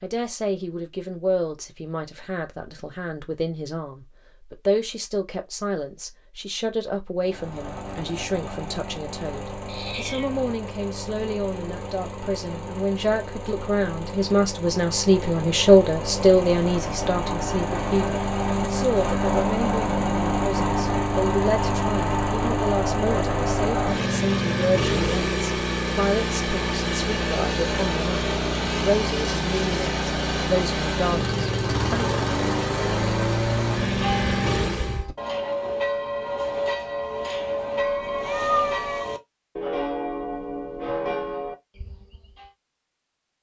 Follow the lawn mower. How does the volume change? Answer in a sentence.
The loudness of the lawn mower goes up.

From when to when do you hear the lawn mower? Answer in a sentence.
The lawn mower can be heard from 7.2 to 35.0 s.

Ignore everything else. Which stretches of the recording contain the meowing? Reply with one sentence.
The meowing can be heard from 9.7 to 10.4 s and from 37.8 to 39.0 s.